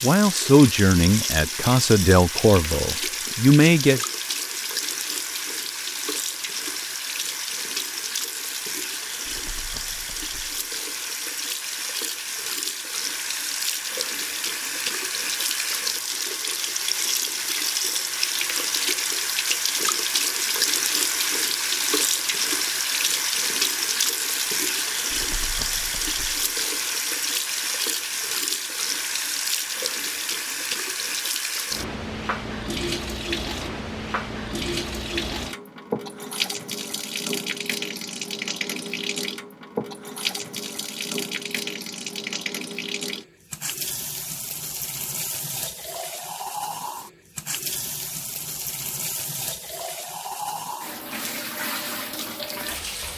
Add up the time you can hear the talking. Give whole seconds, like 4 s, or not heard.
4 s.